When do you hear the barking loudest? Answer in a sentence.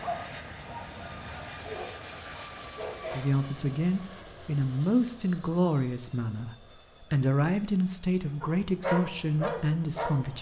The volume of the barking peaks at 9 seconds.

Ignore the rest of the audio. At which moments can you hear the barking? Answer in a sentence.
You can hear the barking from 0.0 to 3.2 s and from 8.4 to 10.2 s.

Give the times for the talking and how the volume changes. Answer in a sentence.
The talking can be heard from 3.1 to 10.3 s, at a steady volume.